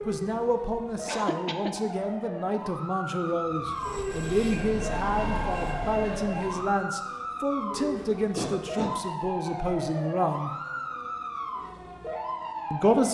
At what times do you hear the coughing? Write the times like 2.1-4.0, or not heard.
1.1-1.8, 8.3-9.0.